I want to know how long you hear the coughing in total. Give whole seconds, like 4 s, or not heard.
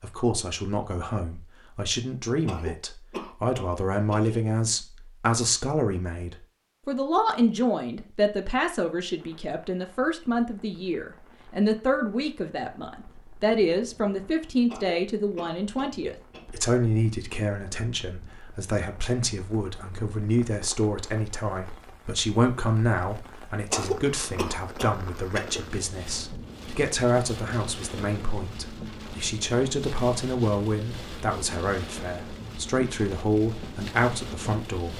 6 s.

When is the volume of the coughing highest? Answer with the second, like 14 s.
24 s.